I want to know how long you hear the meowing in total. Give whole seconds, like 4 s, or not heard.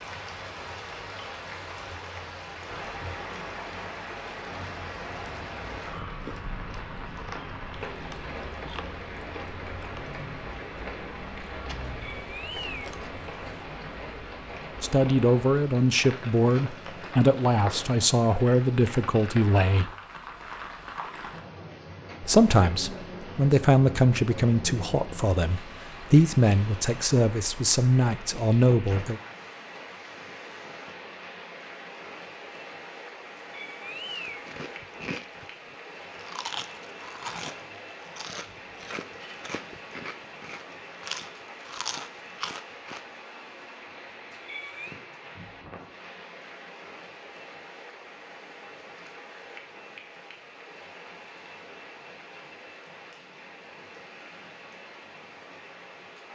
3 s.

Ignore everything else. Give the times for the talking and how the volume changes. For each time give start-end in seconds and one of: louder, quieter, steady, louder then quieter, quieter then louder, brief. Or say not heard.
14.8-19.9 steady
22.2-29.2 steady.